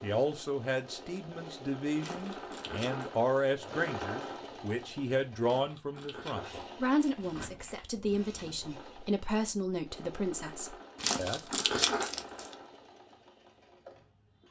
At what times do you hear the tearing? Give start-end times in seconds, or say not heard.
1.9-3.1, 5.4-8.0, 11.0-12.5.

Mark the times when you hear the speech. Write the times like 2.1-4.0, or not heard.
0.0-11.4.